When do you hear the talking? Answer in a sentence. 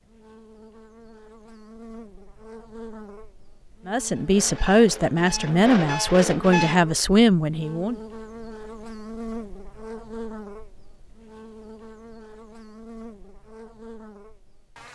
You can hear the talking from 3.9 to 8.0 s.